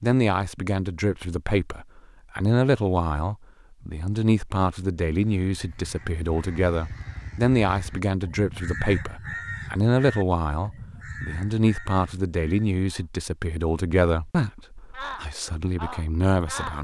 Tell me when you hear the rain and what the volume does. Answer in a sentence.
You can't hear the rain here.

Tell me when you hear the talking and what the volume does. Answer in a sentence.
The talking can be heard from 0.0 to 16.7 s, at a steady volume.